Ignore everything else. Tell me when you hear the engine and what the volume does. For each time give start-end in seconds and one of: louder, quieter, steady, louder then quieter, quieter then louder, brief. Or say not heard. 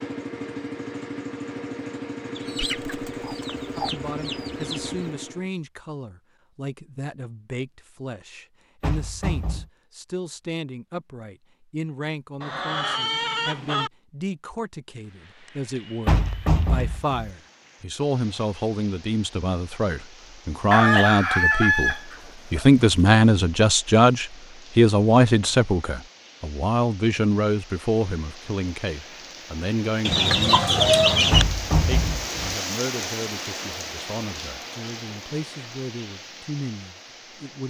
0.0-5.5 steady.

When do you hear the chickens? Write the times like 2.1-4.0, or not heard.
2.4-5.0, 12.4-13.9, 20.7-22.6, 30.1-31.4.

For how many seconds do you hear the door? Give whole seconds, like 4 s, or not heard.
3 s.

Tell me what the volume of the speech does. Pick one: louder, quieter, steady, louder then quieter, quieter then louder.
louder then quieter.